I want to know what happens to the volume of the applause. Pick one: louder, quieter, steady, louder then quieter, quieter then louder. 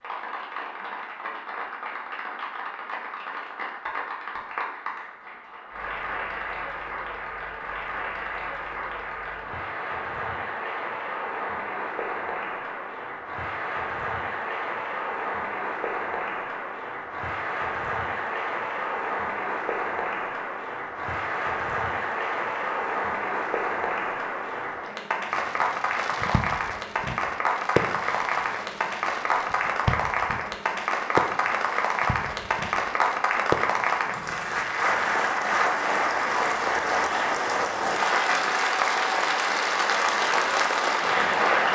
louder.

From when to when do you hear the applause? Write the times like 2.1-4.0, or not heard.
0.0-41.7.